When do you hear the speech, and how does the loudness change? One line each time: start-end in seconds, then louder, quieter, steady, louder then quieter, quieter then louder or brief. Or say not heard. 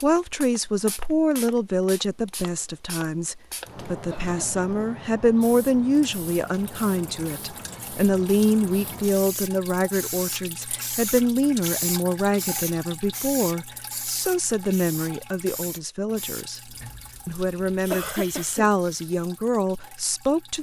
0.0-20.5 steady.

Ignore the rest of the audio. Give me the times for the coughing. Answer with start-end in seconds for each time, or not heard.
4.1-4.7, 17.9-18.7.